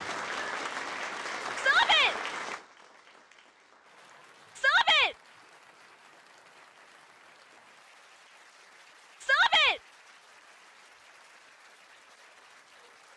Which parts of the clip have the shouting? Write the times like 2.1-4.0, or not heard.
1.6-2.1, 4.5-5.2, 9.2-9.8.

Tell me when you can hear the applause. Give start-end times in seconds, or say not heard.
0.0-13.1.